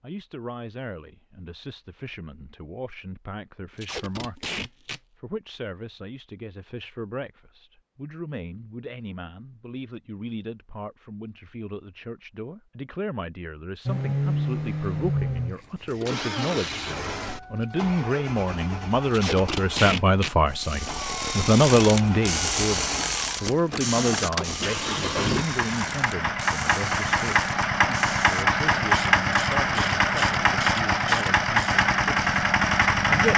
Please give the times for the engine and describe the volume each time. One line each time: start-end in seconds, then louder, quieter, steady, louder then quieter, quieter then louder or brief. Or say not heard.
13.8-33.3 quieter then louder.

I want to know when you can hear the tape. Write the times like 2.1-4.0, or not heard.
3.8-5.0, 19.1-20.3.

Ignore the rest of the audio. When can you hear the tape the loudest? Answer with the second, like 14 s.
20 s.